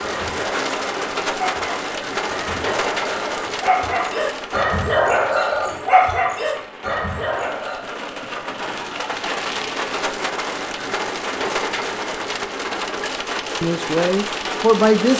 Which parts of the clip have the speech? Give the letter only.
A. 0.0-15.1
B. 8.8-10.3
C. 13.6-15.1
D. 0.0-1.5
C.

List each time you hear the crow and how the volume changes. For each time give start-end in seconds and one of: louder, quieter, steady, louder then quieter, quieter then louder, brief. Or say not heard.
not heard.